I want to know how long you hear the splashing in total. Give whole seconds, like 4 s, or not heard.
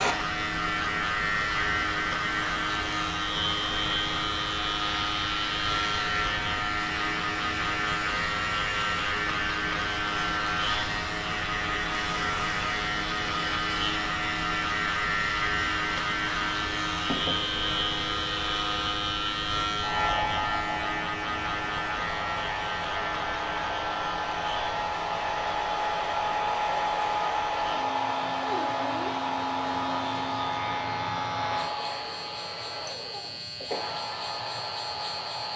not heard.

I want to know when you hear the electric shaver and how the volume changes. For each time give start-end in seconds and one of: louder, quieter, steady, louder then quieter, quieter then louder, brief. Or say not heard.
0.0-35.5 quieter.